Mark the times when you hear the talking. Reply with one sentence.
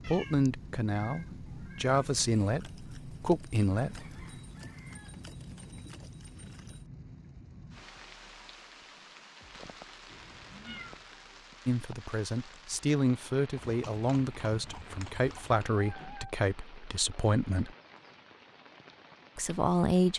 The talking can be heard from 0.1 to 4.0 s, from 11.7 to 17.7 s and from 19.4 to 20.1 s.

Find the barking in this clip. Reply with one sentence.
You can't hear the barking here.